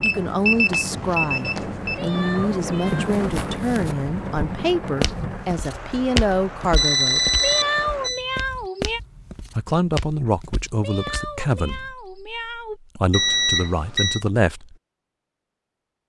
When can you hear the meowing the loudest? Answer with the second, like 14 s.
8 s.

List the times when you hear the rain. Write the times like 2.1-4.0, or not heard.
0.0-8.1.